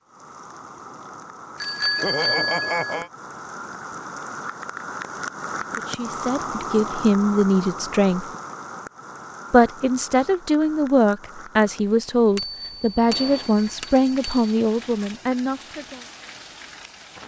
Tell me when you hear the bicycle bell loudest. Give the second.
2 s.